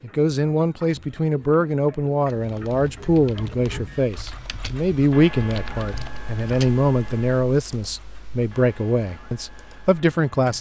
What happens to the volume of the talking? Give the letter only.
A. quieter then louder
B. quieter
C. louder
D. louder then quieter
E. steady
E.